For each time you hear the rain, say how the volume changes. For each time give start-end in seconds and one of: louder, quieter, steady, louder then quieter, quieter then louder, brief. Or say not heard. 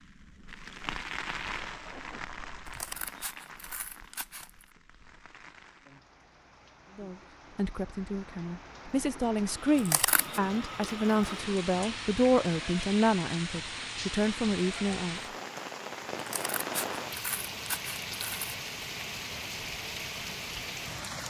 0.0-21.2 quieter then louder.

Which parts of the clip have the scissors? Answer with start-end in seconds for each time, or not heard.
2.6-4.7, 9.8-10.4, 16.1-18.6.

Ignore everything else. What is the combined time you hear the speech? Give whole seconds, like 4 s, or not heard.
8 s.